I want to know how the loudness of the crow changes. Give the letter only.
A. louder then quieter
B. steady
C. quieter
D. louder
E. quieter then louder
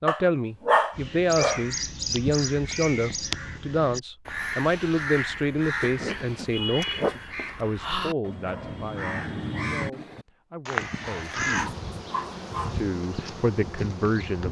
B.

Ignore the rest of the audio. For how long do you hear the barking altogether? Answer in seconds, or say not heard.
5 s.